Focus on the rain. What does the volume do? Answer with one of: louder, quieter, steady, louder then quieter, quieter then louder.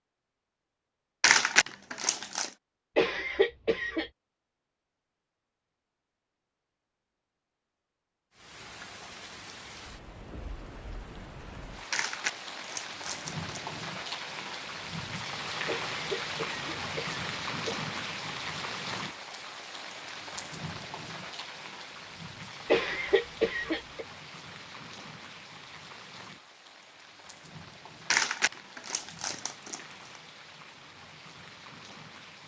louder then quieter.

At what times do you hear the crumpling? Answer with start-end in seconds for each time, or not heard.
1.2-2.5, 11.9-13.7, 28.1-30.2.